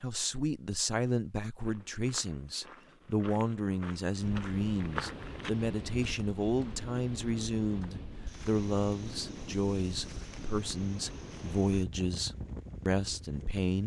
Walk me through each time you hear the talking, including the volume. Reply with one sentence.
The talking can be heard from 0.0 to 13.8 s, at a steady volume.